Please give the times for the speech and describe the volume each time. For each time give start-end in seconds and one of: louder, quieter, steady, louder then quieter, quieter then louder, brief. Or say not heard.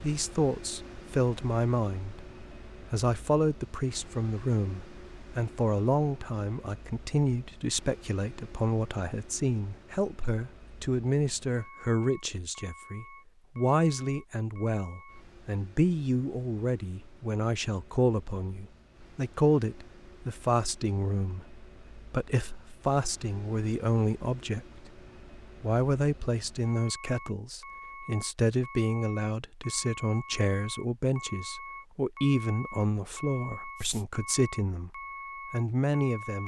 0.0-2.3 brief
2.9-24.9 steady
25.6-36.4 steady.